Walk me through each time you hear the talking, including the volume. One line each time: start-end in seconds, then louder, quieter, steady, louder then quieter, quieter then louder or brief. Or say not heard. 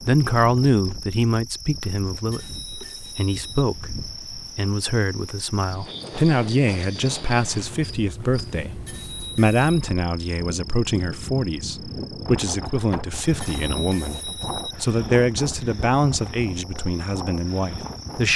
0.0-18.3 steady.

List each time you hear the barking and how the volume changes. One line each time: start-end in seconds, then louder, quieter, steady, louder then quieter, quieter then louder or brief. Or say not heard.
not heard.